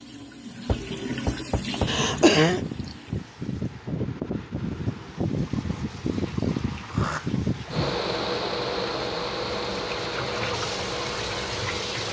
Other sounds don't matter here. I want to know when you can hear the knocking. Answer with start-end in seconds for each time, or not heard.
0.7-1.9.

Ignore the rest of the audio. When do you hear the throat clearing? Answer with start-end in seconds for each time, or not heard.
1.9-2.6, 6.9-8.0.